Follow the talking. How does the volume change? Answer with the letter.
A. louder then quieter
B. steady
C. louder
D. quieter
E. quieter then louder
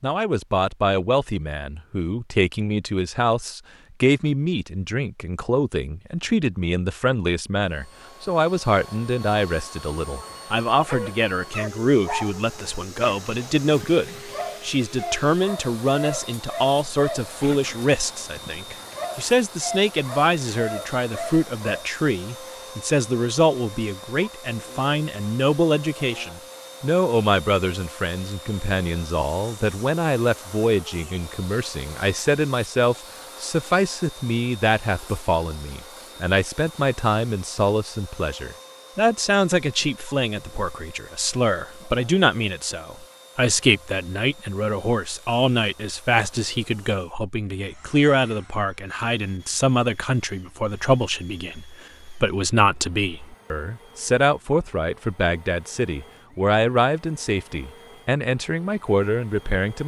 B.